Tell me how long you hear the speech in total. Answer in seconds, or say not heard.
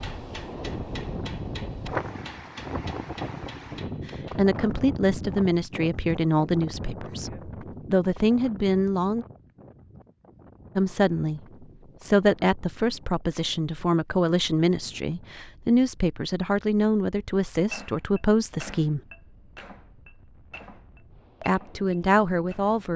14 s.